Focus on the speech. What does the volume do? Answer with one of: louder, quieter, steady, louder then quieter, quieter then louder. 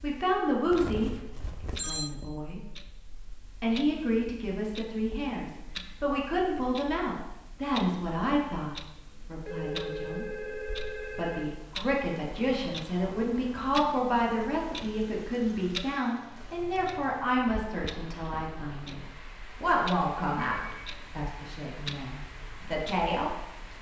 steady.